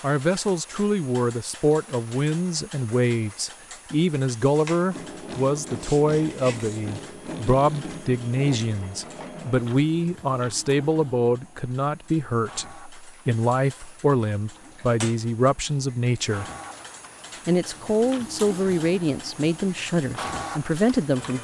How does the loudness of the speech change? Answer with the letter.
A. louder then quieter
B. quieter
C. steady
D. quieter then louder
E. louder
C.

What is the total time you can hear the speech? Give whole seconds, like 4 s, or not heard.
20 s.